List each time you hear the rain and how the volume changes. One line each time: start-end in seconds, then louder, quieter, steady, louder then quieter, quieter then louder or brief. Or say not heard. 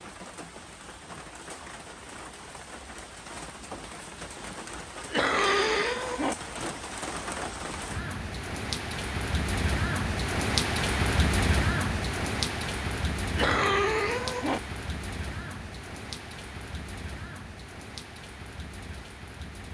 0.0-19.6 louder then quieter.